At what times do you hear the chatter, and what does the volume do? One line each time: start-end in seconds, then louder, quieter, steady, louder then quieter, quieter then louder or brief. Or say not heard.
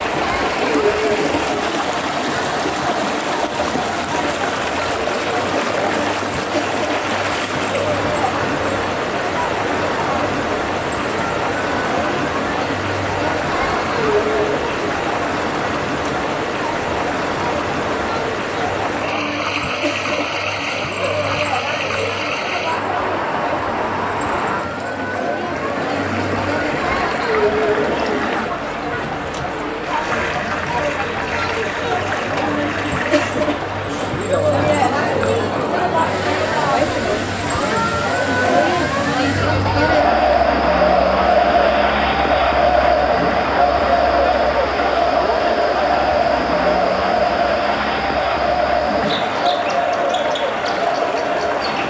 0.0-51.8 louder.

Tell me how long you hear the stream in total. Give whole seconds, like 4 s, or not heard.
52 s.